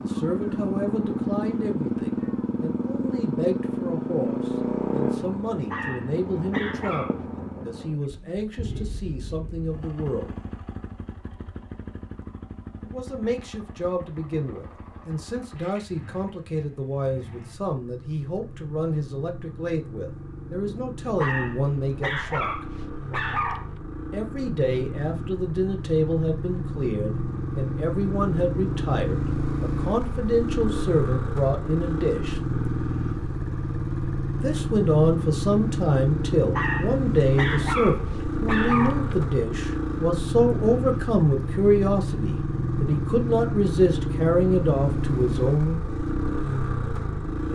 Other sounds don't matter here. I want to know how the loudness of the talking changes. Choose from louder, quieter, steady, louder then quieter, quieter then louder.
louder.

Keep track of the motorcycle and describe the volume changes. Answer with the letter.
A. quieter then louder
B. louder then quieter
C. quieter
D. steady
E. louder
A.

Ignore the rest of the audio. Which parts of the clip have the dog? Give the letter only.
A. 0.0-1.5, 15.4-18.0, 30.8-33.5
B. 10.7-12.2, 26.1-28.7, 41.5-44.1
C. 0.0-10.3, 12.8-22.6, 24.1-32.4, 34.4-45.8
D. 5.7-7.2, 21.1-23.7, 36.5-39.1
D.